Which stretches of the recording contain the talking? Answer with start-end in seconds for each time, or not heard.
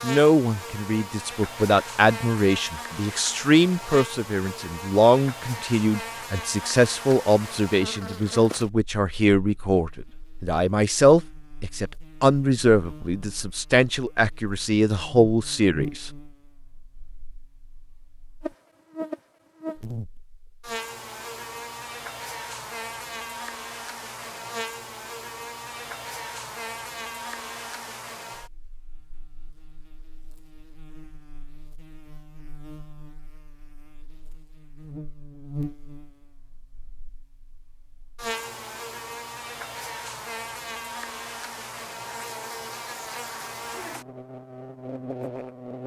0.0-16.1.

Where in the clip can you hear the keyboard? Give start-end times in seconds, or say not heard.
not heard.